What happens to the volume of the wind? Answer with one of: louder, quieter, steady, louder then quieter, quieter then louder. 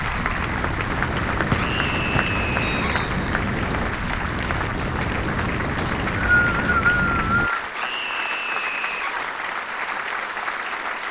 steady.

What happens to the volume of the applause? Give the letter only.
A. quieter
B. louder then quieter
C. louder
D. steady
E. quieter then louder
D.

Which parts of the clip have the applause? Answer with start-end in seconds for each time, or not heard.
0.0-11.0.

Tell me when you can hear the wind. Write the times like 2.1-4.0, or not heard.
0.0-7.5.